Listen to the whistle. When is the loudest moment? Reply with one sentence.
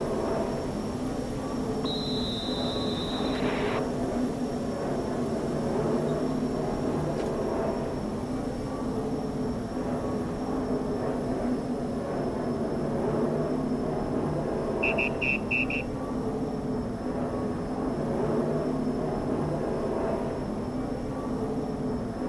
The volume of the whistle peaks at 15 seconds.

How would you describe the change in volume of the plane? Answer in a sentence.
The volume of the plane stays about the same.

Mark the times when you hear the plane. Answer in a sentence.
The plane can be heard from 0.0 to 22.2 s.